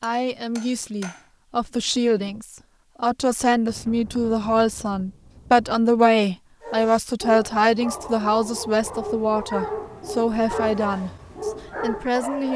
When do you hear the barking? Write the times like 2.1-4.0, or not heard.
6.6-12.5.